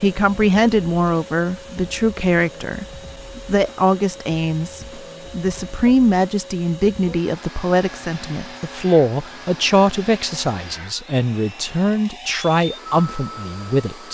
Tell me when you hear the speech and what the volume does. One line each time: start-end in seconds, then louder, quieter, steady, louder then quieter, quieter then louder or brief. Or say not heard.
0.0-14.0 steady.